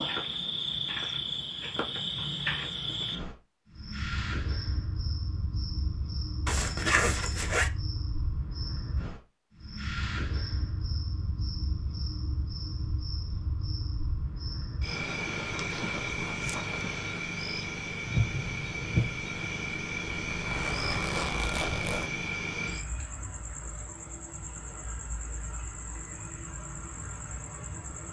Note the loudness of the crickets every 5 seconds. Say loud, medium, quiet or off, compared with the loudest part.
loud, medium, medium, loud, loud, medium.